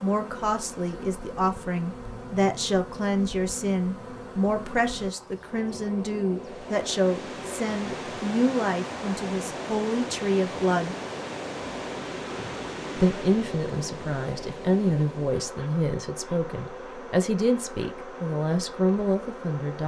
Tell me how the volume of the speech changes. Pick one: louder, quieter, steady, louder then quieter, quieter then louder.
steady.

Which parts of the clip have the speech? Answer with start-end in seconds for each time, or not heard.
0.0-10.9, 12.9-19.8.